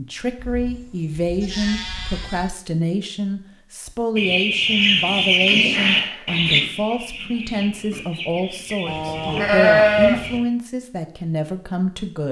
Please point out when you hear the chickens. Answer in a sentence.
You can hear the chickens from 4.2 to 10.4 s.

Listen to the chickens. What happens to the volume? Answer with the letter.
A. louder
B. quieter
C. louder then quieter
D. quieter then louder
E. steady
B.